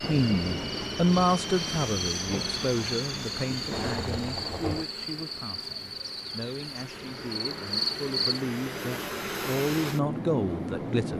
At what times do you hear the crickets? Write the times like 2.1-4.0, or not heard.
0.2-8.4.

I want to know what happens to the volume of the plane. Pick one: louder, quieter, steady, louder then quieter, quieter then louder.
quieter then louder.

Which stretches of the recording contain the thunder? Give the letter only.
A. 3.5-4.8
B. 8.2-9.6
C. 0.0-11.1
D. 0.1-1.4
A.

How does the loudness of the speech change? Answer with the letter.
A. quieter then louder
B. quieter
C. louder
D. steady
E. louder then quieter
A.